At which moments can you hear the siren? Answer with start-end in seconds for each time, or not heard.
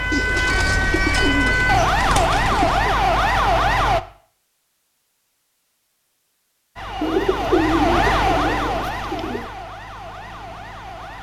0.0-4.0, 6.8-11.1.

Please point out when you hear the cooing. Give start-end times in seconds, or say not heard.
0.1-3.0, 7.0-9.5.